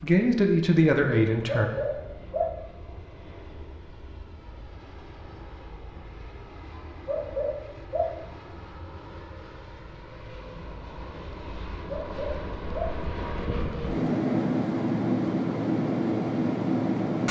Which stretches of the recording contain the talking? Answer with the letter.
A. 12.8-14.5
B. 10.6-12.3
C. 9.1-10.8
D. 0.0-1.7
D.